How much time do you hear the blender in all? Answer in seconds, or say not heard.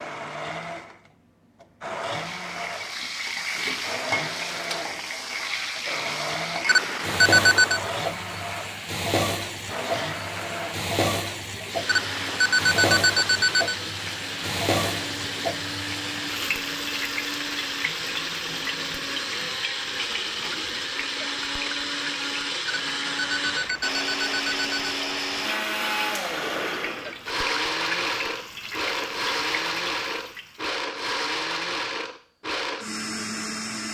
34 s.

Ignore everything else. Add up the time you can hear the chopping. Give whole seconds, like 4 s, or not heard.
not heard.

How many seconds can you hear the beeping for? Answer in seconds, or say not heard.
5 s.